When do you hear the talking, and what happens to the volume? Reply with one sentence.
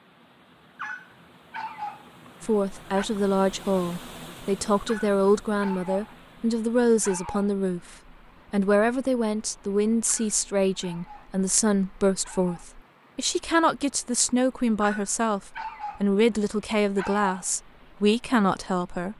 The talking can be heard from 2.4 to 19.1 s, at a steady volume.